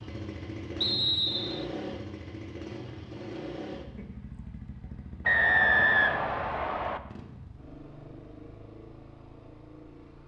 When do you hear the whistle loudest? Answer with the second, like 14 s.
6 s.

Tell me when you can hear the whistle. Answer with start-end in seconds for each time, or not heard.
0.8-1.6, 5.2-7.0.